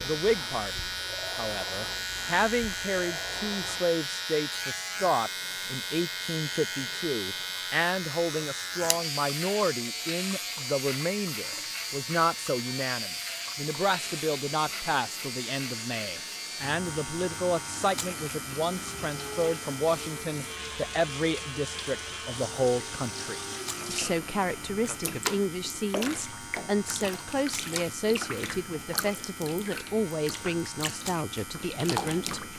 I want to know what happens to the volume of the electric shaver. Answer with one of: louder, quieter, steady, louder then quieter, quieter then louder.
quieter.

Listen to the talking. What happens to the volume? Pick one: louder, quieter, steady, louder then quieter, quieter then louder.
steady.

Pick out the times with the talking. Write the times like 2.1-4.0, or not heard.
0.0-32.5.